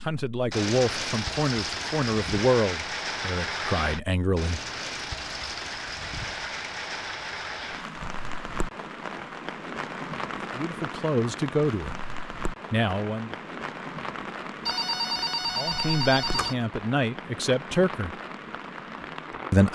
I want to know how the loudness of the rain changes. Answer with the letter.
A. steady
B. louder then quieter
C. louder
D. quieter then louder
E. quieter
E.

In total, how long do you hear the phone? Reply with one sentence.
You can hear the phone for 2 seconds altogether.